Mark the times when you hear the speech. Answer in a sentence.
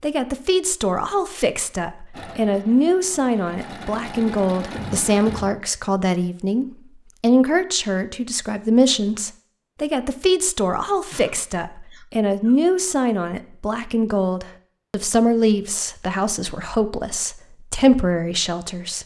The speech can be heard from 0.0 to 19.0 s.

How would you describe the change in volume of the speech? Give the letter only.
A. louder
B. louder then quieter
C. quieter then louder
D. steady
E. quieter
D.